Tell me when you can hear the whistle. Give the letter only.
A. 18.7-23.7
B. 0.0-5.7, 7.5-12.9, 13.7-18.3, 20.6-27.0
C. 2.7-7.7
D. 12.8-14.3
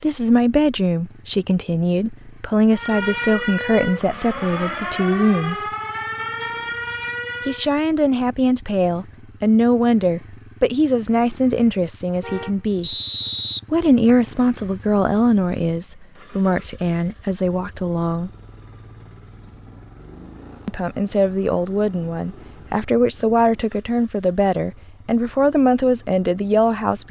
D.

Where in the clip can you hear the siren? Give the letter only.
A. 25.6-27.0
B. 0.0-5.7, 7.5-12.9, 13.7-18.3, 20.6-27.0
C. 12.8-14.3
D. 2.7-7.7
D.